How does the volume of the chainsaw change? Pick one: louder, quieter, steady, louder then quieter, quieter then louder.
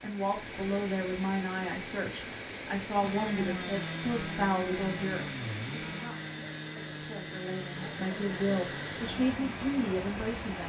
quieter.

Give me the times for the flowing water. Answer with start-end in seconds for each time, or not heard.
0.0-10.6.